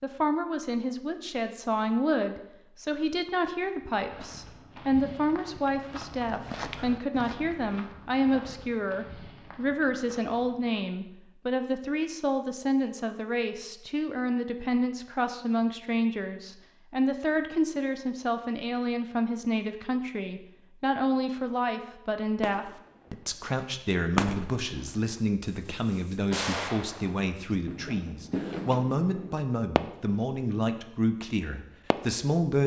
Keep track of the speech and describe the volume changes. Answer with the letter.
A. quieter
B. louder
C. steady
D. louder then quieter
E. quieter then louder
C.